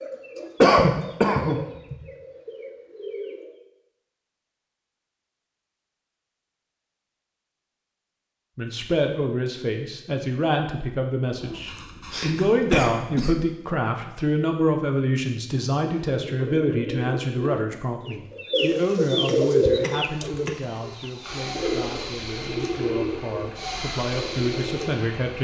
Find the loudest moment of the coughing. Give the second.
1 s.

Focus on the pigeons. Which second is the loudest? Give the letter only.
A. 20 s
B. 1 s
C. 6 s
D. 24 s
A.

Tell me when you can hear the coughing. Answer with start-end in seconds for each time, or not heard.
0.6-1.6, 11.4-13.3, 19.2-20.6.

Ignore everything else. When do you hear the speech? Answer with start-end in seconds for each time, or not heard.
8.6-25.3.